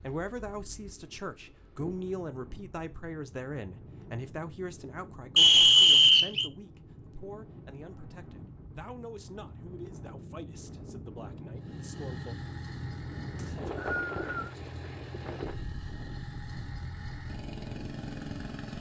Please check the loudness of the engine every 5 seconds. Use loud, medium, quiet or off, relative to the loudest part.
off, off, loud, loud.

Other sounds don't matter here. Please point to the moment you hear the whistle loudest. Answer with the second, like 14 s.
6 s.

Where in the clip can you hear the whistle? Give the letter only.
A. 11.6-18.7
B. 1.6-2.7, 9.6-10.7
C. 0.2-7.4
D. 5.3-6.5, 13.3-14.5
D.